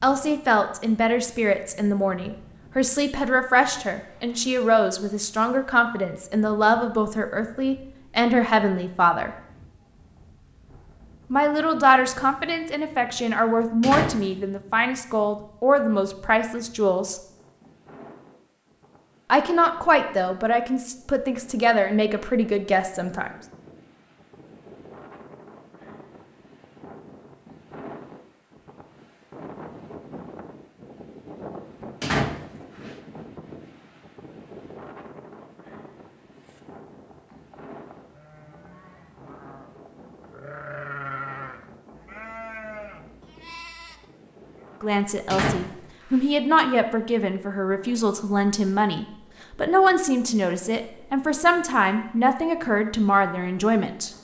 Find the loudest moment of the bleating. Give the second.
41 s.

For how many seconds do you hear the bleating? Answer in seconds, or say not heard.
8 s.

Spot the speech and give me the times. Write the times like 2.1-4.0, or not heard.
0.0-9.3, 11.3-17.2, 19.3-23.3, 44.8-54.1.